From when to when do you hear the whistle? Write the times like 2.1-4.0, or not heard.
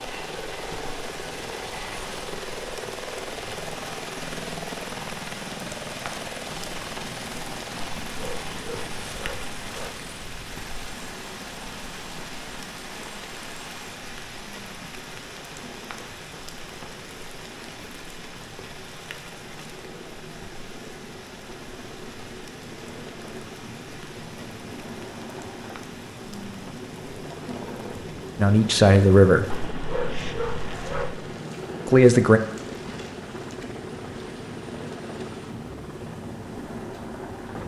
not heard.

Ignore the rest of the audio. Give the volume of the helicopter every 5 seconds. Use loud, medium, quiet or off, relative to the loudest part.
loud, loud, medium, medium, medium, loud, loud, loud.